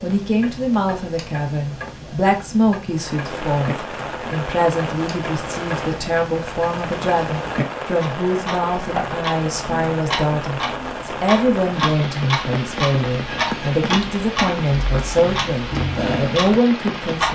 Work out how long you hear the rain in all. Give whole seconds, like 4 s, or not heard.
14 s.